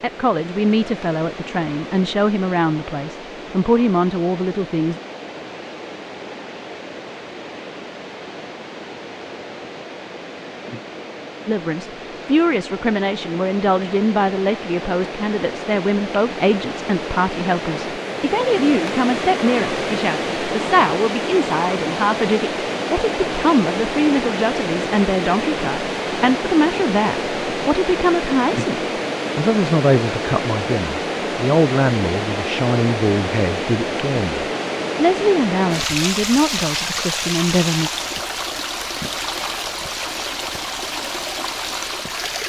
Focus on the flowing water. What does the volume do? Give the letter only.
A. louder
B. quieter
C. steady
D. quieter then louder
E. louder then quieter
A.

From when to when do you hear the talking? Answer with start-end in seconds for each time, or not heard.
0.0-5.0, 11.4-37.9.